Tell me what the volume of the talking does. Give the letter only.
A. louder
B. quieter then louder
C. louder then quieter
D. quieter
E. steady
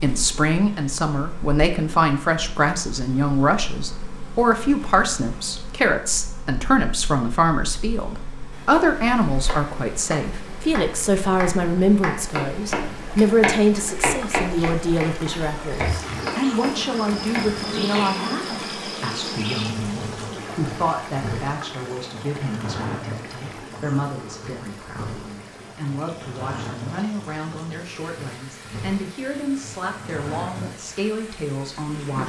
D.